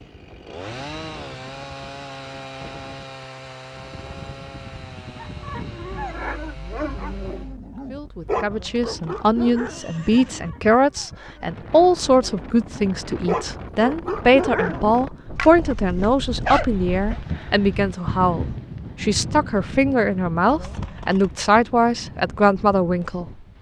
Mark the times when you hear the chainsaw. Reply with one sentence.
You can hear the chainsaw from 0.0 to 7.5 s.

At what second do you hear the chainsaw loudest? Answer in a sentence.
The volume of the chainsaw peaks at 1 second.